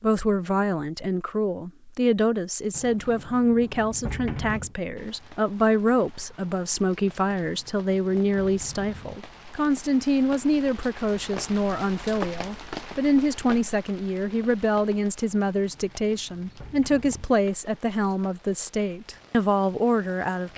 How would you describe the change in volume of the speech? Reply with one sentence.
The loudness of the speech stays about the same.